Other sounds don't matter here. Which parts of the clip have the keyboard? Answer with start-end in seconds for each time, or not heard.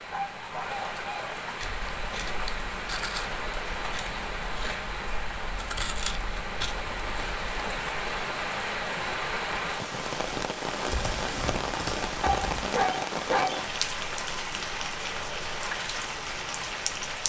10.8-12.8.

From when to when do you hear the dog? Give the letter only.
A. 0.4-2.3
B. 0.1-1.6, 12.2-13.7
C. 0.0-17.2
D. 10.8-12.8
B.